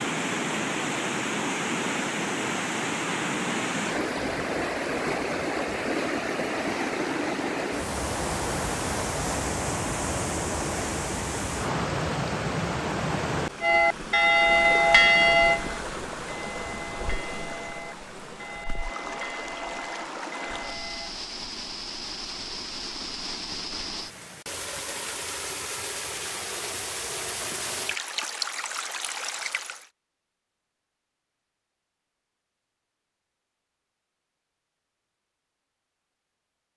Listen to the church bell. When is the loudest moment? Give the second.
15 s.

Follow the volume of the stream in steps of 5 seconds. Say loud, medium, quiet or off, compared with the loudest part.
loud, loud, loud, medium, medium, medium, off, off.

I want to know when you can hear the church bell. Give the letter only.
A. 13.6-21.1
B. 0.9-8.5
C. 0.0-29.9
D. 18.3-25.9
A.